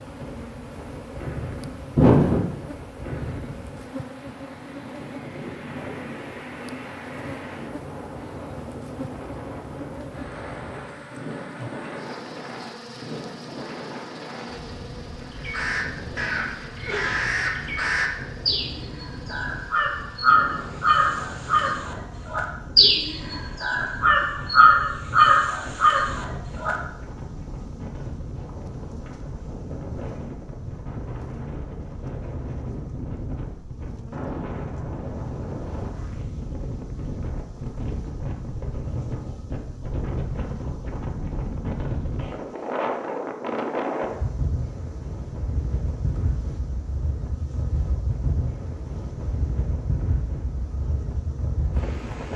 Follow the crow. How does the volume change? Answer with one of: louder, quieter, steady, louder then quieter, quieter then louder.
louder.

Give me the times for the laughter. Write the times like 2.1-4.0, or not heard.
1.9-2.5.